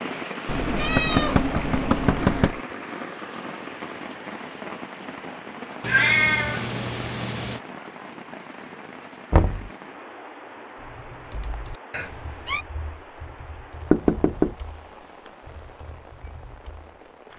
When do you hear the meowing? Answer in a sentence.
You can hear the meowing from 0.5 to 2.5 s, from 5.8 to 7.6 s and from 11.9 to 12.7 s.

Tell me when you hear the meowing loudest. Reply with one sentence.
The loudest moment of the meowing is at 6 seconds.